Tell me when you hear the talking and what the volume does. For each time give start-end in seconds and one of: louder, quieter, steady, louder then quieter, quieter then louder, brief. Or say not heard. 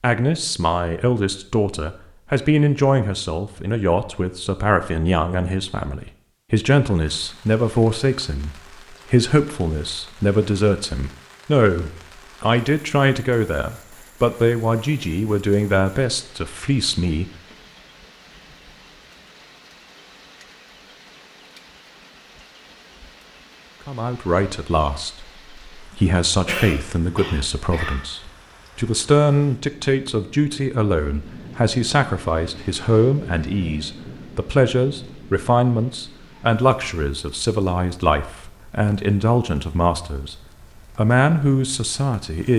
0.0-17.3 steady
23.9-42.5 steady.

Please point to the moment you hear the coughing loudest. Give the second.
27 s.